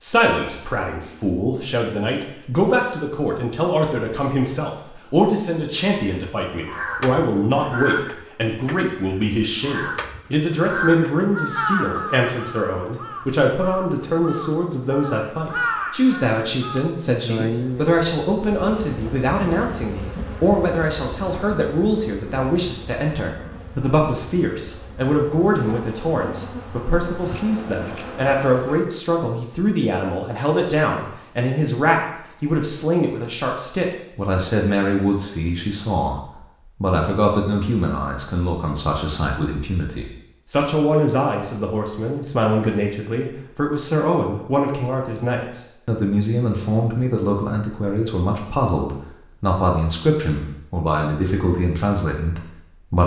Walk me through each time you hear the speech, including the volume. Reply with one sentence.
You can hear the speech from 0.0 to 53.0 s, at a steady volume.